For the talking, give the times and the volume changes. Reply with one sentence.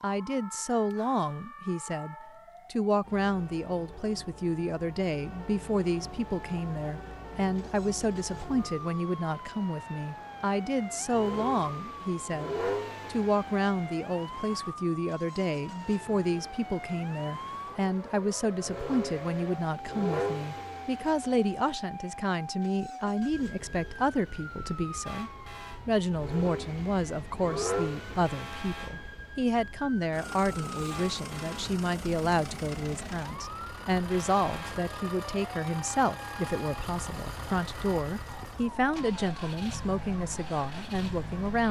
You can hear the talking from 0.0 to 41.6 s, at a steady volume.